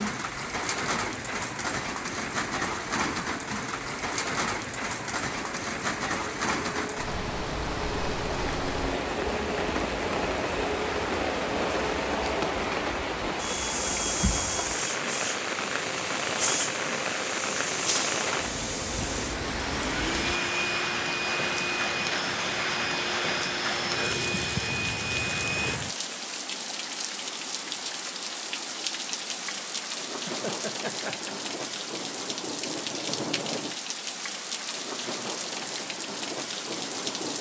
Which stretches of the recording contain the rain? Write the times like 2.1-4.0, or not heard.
0.0-37.3.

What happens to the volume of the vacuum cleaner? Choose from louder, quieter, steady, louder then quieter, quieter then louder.
louder.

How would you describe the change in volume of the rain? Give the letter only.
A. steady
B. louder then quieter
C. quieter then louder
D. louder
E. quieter
A.